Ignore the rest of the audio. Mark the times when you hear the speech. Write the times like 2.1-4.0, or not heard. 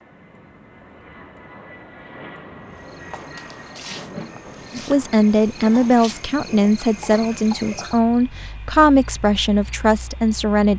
4.8-10.7.